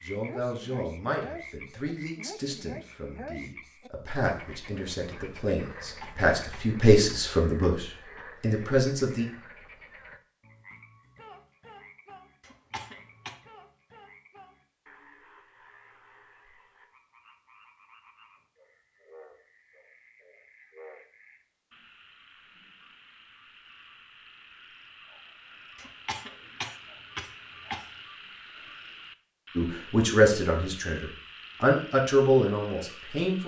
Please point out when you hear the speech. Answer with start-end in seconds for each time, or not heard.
0.0-9.2, 29.6-33.4.